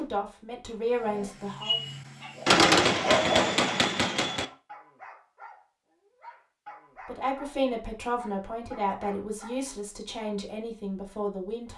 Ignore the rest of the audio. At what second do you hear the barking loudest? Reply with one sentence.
The volume of the barking peaks at 3 seconds.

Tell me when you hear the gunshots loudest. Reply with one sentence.
The volume of the gunshots peaks at 3 seconds.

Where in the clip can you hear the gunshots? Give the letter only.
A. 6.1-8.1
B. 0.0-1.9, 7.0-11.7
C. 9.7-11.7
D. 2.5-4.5
D.